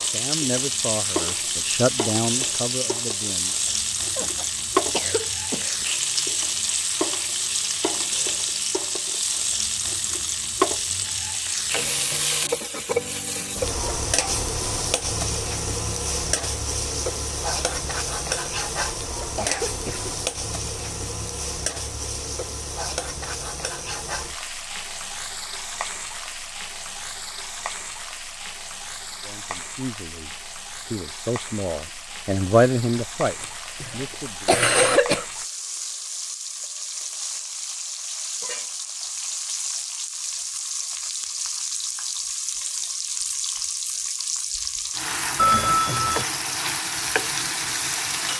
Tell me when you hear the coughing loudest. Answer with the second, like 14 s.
35 s.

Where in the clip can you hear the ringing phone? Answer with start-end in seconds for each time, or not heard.
45.4-46.2.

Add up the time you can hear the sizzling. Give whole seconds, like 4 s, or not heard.
48 s.